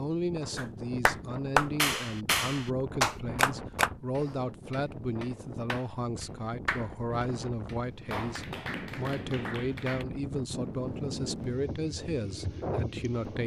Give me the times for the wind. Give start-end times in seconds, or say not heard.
0.0-13.4.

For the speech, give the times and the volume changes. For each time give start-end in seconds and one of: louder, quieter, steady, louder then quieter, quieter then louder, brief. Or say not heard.
0.0-13.4 steady.